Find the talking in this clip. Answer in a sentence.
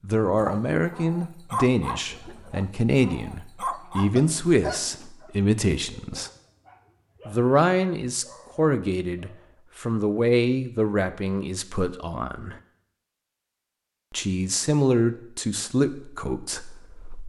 You can hear the talking from 0.0 to 6.3 s, from 7.2 to 12.6 s and from 14.1 to 17.2 s.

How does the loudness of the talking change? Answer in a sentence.
The volume of the talking stays about the same.